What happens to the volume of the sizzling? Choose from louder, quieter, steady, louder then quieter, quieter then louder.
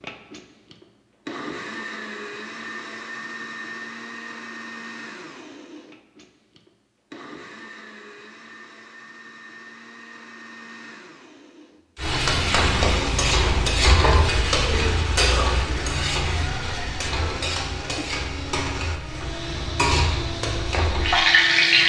quieter then louder.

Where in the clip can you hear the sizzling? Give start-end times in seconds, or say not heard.
12.0-21.8.